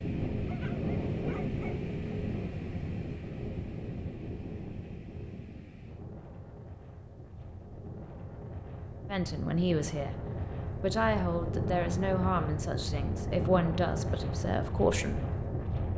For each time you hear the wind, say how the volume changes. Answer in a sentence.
The wind can be heard from 0.0 to 15.9 s, getting quieter then louder.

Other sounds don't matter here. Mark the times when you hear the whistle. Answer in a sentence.
The whistle can't be heard in this clip.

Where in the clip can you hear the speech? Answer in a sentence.
The speech can be heard from 9.1 to 10.2 s and from 10.8 to 15.3 s.